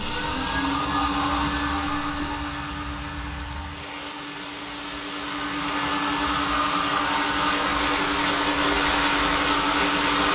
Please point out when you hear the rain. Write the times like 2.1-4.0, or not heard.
0.0-10.3.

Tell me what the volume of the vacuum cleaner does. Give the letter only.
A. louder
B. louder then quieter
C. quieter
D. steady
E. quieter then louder
E.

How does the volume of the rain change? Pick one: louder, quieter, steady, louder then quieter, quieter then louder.
louder.